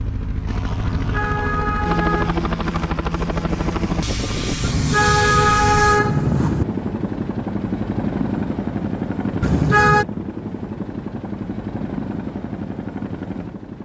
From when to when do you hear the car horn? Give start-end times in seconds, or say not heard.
0.8-2.4, 4.6-6.7, 9.4-10.1.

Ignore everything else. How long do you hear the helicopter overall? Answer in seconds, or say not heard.
14 s.